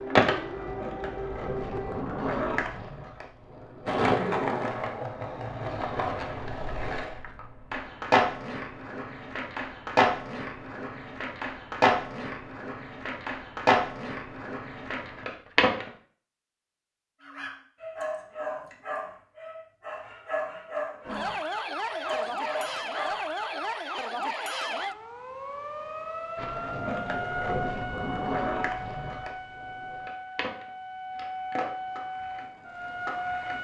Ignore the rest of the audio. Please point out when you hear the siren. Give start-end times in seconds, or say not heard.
0.0-2.0, 21.1-33.5.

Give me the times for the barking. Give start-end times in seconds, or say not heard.
17.2-23.7.